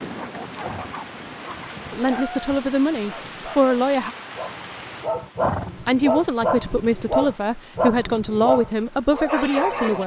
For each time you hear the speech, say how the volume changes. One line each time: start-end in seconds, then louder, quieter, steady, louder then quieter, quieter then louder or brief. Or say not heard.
1.9-4.2 brief
5.8-10.0 steady.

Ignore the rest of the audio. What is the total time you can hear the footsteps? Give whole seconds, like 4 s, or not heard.
not heard.